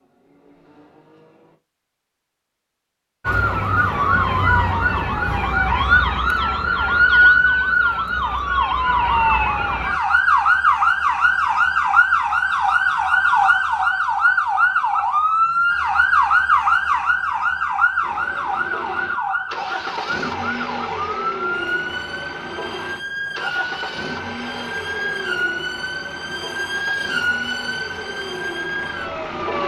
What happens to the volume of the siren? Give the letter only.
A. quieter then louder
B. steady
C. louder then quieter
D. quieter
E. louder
D.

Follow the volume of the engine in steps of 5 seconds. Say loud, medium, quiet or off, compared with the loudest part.
quiet, off, off, loud, loud, loud.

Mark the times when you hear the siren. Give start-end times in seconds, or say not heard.
3.2-29.6.